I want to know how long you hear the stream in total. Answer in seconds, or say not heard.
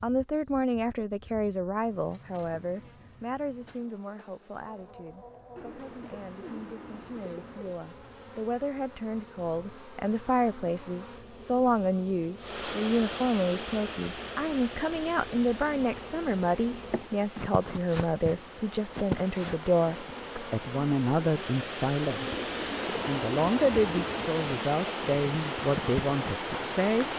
15 s.